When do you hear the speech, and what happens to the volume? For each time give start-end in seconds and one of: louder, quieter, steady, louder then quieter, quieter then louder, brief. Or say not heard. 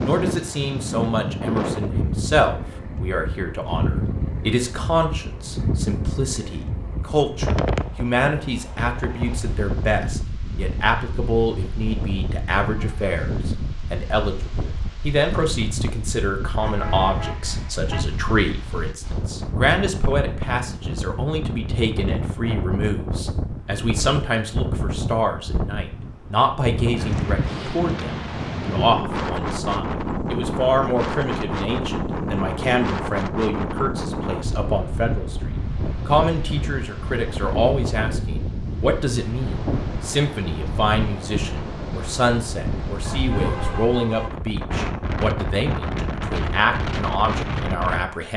0.0-48.3 steady.